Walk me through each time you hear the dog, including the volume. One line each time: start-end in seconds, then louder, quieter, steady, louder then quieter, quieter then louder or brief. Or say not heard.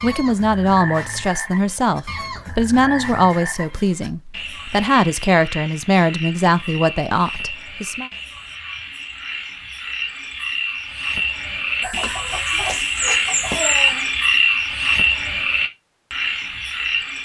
not heard.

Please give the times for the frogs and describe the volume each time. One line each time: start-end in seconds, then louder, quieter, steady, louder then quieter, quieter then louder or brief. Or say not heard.
0.0-17.2 louder.